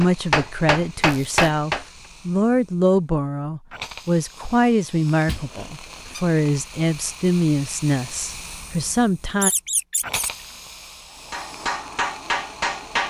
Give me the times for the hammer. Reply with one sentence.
The hammer can be heard from 0.0 to 1.9 s and from 11.2 to 13.0 s.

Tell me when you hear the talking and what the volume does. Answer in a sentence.
The talking can be heard from 0.0 to 9.5 s, at a steady volume.